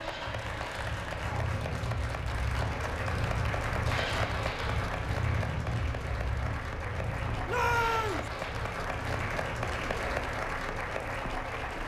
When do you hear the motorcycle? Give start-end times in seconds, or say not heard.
0.0-11.8.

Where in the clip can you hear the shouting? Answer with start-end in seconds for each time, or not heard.
7.5-8.3.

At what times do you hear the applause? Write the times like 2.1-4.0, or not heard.
0.0-11.8.